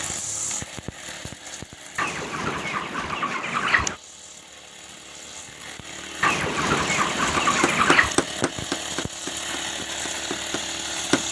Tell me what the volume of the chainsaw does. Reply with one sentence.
The loudness of the chainsaw goes down, then up.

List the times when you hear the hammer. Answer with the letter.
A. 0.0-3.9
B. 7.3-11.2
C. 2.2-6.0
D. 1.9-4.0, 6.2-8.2
B.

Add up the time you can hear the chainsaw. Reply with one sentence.
You can hear the chainsaw for 11 seconds altogether.